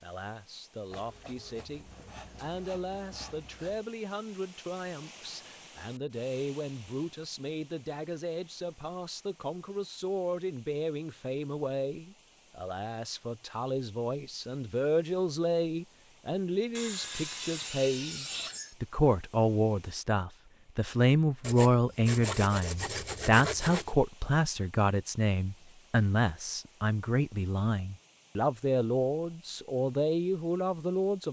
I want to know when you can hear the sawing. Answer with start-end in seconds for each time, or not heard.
0.9-3.9, 16.8-18.8, 21.4-23.9.